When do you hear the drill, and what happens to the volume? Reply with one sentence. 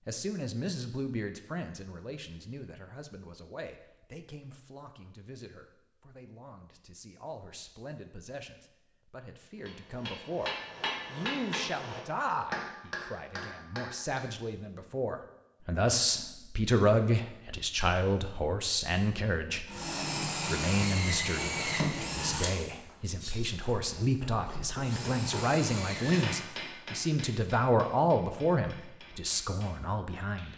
The drill can be heard from 19.6 to 26.4 s, getting quieter then louder.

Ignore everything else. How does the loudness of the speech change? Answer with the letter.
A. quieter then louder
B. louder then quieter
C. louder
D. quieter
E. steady
C.